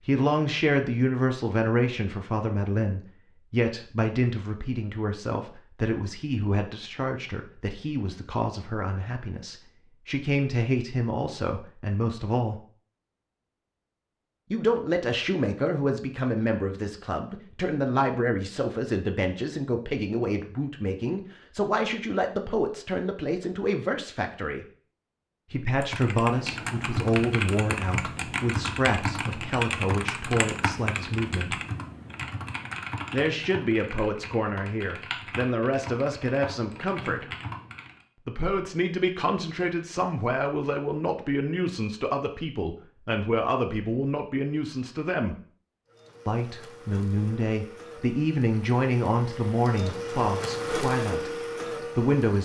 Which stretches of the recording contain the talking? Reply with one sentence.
You can hear the talking from 0.0 to 12.6 s, from 14.5 to 24.6 s, from 25.5 to 31.6 s, from 33.1 to 37.3 s, from 38.2 to 45.4 s and from 46.2 to 52.4 s.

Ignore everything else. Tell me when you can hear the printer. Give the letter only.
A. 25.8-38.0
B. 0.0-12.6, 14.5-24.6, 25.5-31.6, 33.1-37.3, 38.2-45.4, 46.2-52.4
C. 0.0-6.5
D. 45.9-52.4
D.